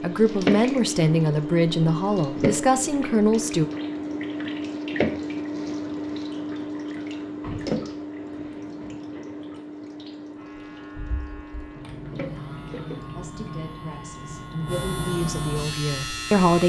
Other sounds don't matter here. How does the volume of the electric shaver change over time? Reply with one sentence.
The volume of the electric shaver goes up.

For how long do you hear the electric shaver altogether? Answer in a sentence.
The electric shaver can be heard for 6 seconds in total.